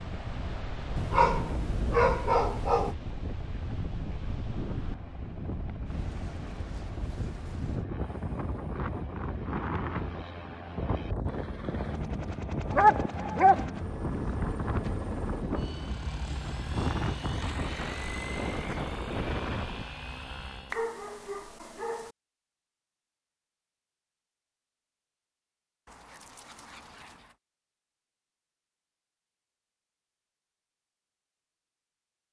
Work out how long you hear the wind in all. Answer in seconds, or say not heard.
20 s.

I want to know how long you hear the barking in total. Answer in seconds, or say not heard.
6 s.